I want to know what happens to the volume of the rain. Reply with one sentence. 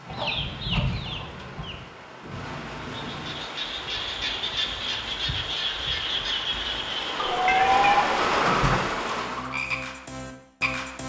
The volume of the rain goes up.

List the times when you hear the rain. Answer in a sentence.
The rain can be heard from 0.0 to 9.5 s.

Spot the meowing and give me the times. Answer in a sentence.
You can hear the meowing from 2.2 to 3.5 s and from 7.5 to 8.9 s.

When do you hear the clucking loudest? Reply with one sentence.
The loudest moment of the clucking is at 8 seconds.